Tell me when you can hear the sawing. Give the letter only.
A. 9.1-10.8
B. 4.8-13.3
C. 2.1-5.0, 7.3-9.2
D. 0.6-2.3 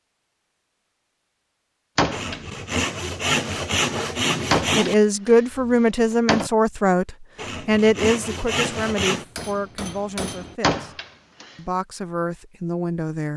C.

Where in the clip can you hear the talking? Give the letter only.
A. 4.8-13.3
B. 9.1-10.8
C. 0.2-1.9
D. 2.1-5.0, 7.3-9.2
A.